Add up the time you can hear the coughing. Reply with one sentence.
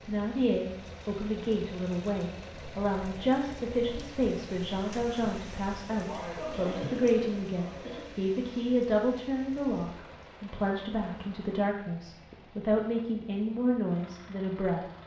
You can hear the coughing for 2 seconds altogether.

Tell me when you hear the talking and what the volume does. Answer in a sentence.
You can hear the talking from 0.1 to 15.0 s, at a steady volume.